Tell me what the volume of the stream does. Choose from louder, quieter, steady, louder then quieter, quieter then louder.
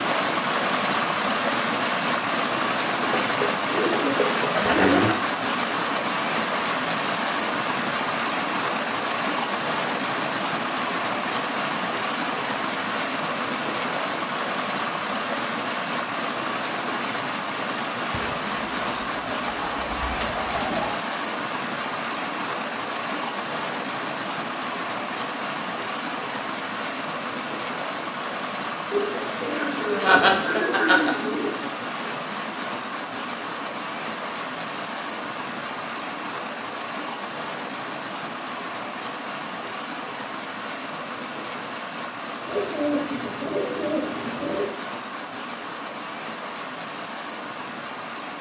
quieter.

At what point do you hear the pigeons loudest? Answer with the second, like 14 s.
5 s.